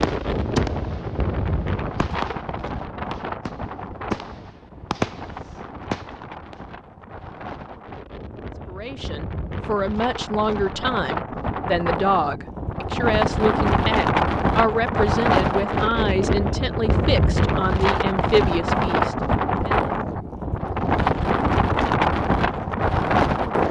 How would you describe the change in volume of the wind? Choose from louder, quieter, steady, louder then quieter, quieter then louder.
quieter then louder.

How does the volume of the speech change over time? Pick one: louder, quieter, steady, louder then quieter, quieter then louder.
steady.